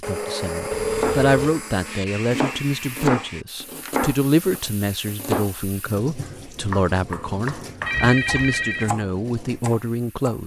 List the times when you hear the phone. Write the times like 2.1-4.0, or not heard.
0.7-1.4, 7.8-8.9.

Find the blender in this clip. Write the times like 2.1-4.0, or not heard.
0.0-3.5.